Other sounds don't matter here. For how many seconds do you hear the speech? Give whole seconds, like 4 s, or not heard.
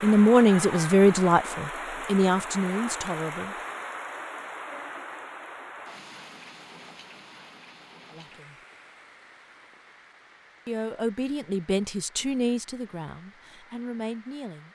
8 s.